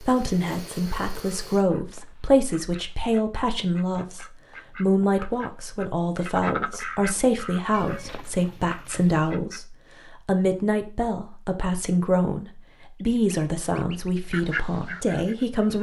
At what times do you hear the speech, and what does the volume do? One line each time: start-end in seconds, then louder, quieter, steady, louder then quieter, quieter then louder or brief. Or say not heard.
0.0-15.7 steady.